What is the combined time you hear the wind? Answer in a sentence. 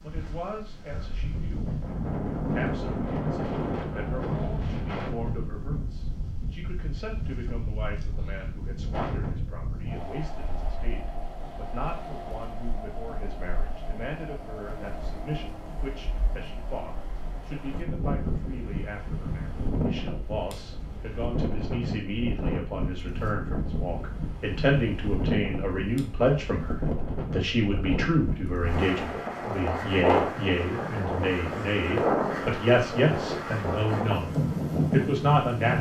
The wind can be heard for 36 seconds in total.